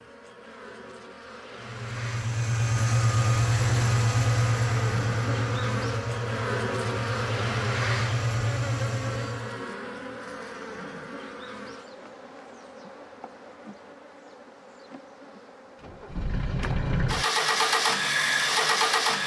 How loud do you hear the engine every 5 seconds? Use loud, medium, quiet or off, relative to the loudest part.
loud, medium, off, loud.